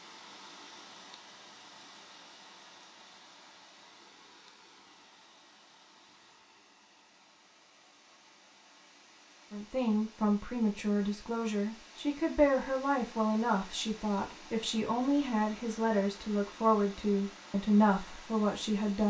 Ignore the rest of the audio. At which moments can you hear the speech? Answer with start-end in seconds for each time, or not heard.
9.5-19.0.